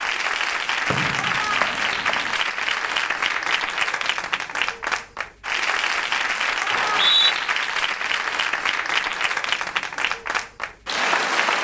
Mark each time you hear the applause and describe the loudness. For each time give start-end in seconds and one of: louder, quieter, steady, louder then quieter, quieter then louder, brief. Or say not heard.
0.0-11.5 steady.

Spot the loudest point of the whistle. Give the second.
7 s.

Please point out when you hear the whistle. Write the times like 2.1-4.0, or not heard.
0.9-2.3, 6.7-7.3.